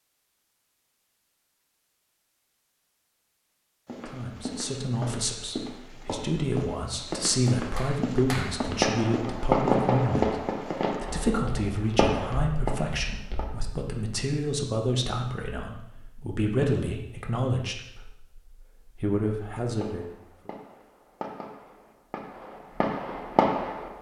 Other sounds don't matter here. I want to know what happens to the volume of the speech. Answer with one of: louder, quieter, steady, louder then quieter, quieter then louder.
steady.